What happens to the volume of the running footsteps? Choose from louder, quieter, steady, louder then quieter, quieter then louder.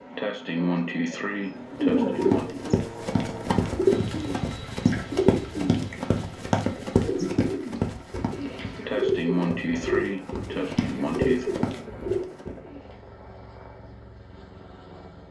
quieter then louder.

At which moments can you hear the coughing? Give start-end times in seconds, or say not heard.
0.1-2.5, 8.8-11.6.